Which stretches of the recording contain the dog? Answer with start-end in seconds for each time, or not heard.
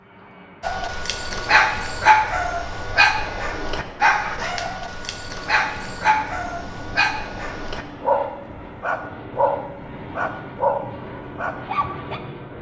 0.6-12.2.